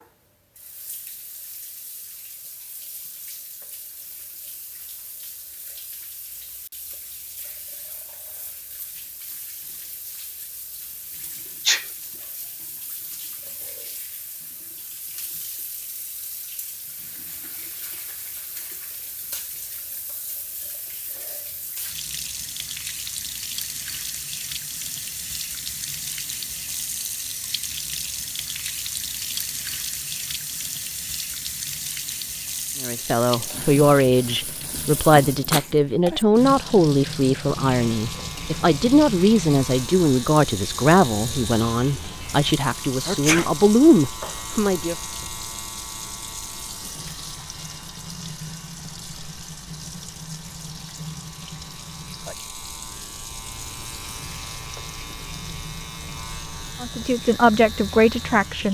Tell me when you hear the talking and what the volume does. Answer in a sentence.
You can hear the talking from 32.8 to 45.0 s, at a steady volume; and briefly from 56.8 to 58.6 s.